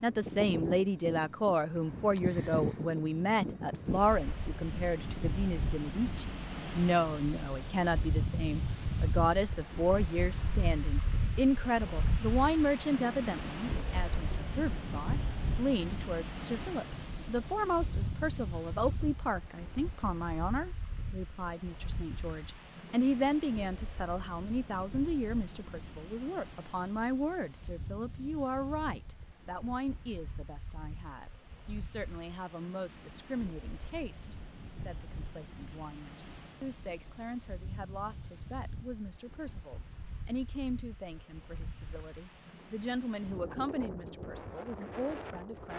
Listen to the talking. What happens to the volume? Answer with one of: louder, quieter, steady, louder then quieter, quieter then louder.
quieter.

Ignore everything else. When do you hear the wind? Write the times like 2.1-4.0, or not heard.
0.0-45.7.